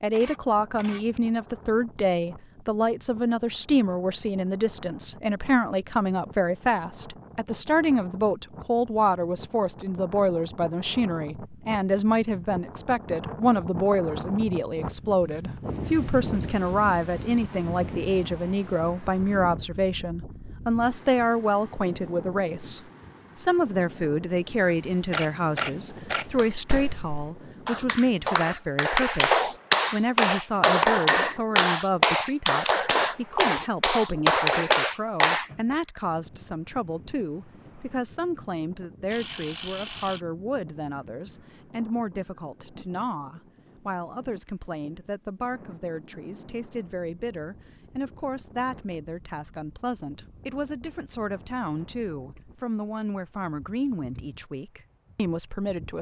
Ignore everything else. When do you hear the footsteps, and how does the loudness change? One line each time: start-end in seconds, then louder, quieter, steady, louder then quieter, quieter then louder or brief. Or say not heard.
not heard.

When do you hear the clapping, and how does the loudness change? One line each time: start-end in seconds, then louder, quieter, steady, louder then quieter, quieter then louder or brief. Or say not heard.
26.4-35.5 louder.